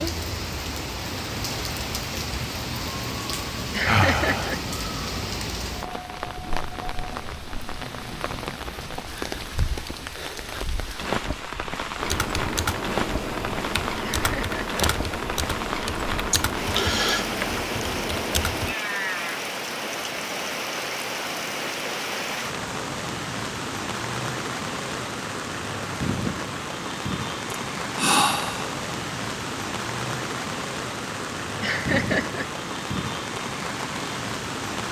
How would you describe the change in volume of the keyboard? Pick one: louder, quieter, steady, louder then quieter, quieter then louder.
steady.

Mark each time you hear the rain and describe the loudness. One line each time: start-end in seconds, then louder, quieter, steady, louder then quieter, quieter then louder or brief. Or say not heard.
0.0-34.8 steady.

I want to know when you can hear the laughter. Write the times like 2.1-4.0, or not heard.
3.7-4.6, 14.0-14.8, 31.6-32.5.